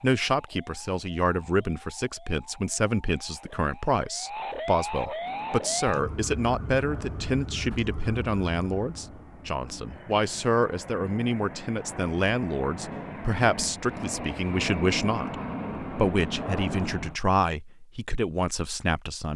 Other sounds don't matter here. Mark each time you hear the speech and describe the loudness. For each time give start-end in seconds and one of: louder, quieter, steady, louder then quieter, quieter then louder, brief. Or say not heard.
0.0-19.3 steady.